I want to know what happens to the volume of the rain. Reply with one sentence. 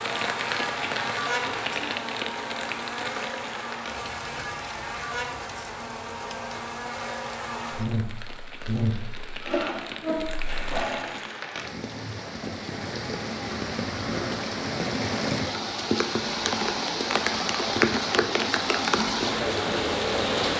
The volume of the rain goes down, then up.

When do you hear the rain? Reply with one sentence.
You can hear the rain from 0.0 to 20.5 s.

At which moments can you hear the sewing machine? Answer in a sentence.
The sewing machine can be heard from 9.4 to 11.2 s.